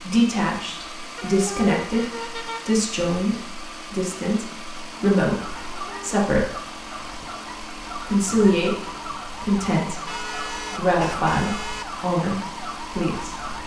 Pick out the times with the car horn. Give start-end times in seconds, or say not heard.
1.1-2.8, 5.7-6.2, 10.1-11.8.